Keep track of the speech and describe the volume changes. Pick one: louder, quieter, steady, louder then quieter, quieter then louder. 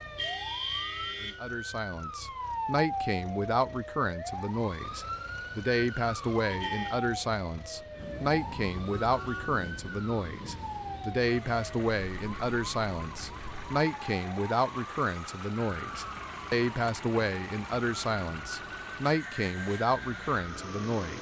steady.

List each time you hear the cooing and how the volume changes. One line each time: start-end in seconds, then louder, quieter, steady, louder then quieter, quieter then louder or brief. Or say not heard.
not heard.